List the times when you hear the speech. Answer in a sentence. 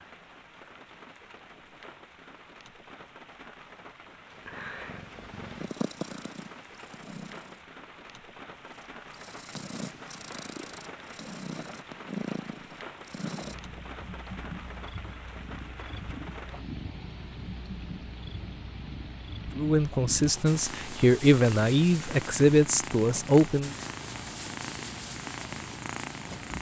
You can hear the speech from 19.6 to 23.7 s.